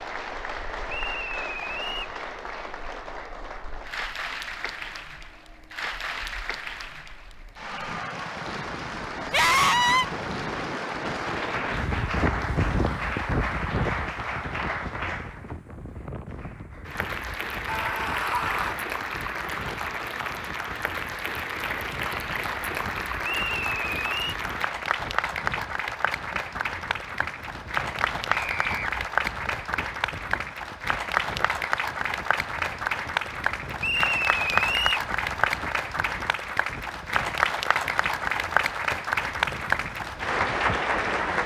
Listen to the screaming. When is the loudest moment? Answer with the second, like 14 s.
10 s.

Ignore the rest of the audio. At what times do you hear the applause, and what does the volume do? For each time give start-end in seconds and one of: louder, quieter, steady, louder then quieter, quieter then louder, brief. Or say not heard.
0.0-41.4 louder.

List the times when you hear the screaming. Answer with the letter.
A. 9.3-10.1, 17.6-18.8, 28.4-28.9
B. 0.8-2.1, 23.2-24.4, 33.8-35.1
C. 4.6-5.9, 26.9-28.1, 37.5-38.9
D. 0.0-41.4
A.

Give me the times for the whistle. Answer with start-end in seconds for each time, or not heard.
0.8-2.1, 23.2-24.4, 33.8-35.1.